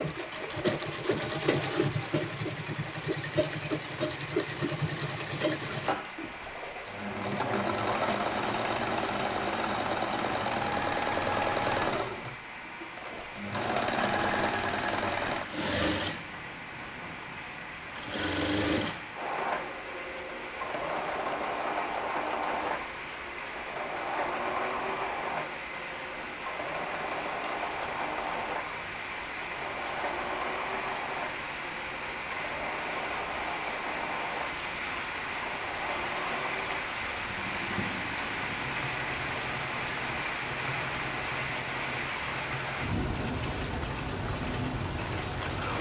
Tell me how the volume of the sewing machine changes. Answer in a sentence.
The loudness of the sewing machine goes down.